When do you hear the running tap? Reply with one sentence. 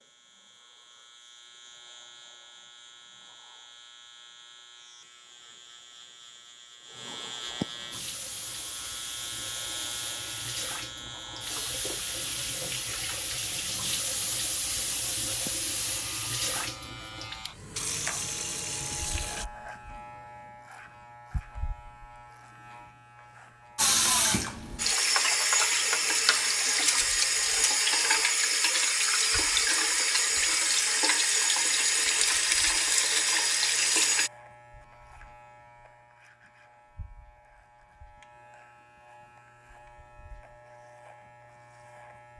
You can hear the running tap from 7.9 to 19.4 s and from 23.8 to 34.3 s.